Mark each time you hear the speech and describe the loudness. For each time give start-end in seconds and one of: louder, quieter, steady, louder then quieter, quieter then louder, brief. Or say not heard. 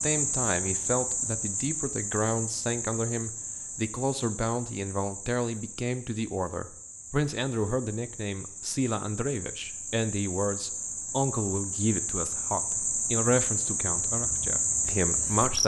0.0-15.6 steady.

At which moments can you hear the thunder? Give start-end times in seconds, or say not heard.
not heard.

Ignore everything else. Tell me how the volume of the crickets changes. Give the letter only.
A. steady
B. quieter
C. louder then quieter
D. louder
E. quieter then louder
E.